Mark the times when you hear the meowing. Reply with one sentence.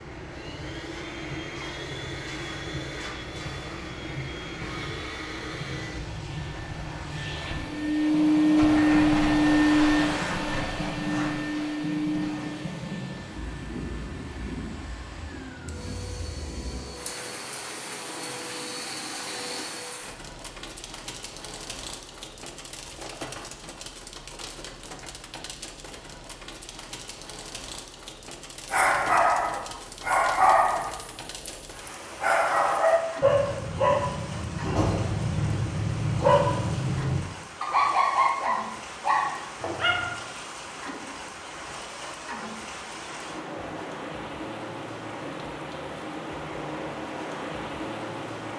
You can't hear the meowing here.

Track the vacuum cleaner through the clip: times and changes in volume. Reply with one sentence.
You can hear the vacuum cleaner from 0.0 to 20.1 s, getting louder then quieter.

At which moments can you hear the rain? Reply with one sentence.
You can hear the rain from 0.0 to 48.5 s.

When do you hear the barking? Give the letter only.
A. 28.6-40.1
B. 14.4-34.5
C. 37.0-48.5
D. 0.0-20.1
A.